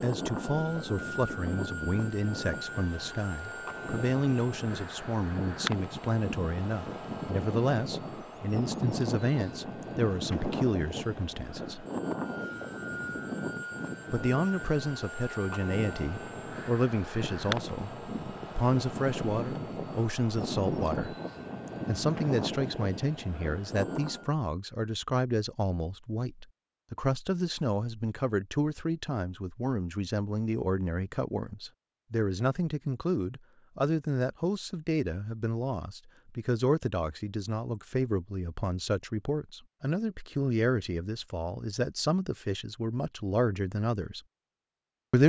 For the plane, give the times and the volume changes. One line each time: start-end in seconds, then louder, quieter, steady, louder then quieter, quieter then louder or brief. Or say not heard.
0.0-24.4 steady.